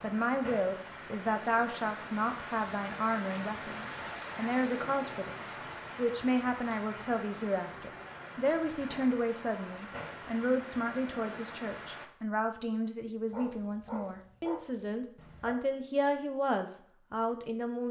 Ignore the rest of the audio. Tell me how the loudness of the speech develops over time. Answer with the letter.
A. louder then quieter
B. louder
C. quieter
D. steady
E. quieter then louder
D.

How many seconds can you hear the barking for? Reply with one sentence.
The barking can be heard for 2 seconds in total.